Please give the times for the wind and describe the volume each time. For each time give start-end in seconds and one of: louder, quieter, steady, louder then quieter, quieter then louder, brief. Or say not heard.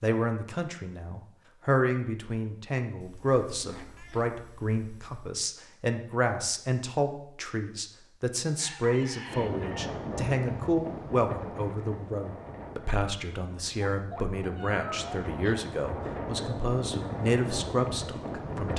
9.2-18.7 quieter then louder.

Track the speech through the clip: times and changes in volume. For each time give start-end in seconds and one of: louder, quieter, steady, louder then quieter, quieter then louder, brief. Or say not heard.
0.0-18.7 steady.